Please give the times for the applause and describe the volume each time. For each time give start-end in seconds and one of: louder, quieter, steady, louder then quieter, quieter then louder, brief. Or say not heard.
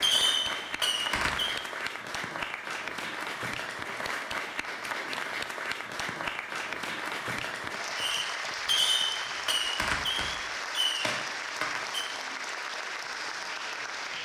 0.0-14.2 steady.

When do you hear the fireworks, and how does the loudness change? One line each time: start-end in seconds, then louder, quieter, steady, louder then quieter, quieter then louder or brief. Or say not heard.
0.0-1.6 brief
8.0-12.1 quieter.